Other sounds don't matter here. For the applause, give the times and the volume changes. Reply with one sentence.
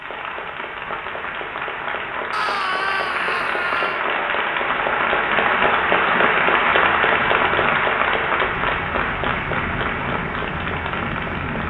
You can hear the applause from 0.0 to 11.6 s, getting louder then quieter.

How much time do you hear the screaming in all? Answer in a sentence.
You can hear the screaming for 2 seconds altogether.